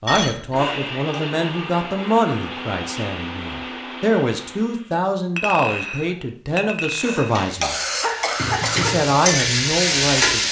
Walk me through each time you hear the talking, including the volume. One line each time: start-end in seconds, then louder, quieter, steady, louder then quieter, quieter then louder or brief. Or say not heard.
0.0-7.8 steady
8.8-10.4 brief.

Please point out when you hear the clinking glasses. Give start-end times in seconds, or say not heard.
0.1-0.7, 5.3-7.3.